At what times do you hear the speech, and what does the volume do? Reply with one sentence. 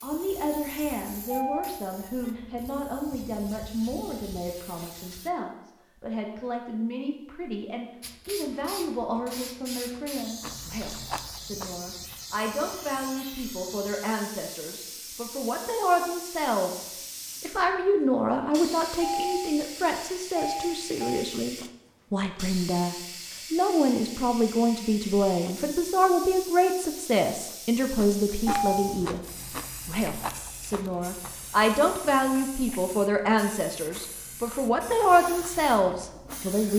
The speech can be heard from 0.0 to 36.7 s, getting louder.